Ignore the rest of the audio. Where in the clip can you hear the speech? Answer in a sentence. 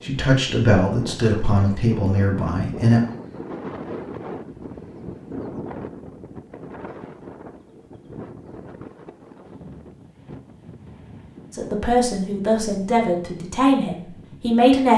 You can hear the speech from 0.0 to 3.0 s and from 11.5 to 14.9 s.